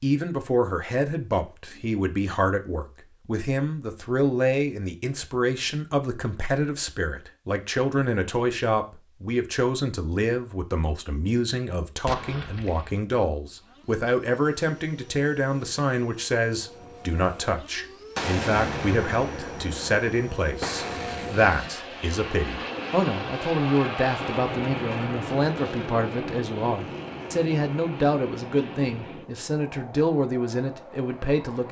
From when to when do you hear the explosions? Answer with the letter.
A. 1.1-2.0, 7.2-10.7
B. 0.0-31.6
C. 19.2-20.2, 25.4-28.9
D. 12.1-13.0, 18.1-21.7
D.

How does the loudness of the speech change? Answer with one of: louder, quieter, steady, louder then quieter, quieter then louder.
steady.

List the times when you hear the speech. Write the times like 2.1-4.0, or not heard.
0.0-31.6.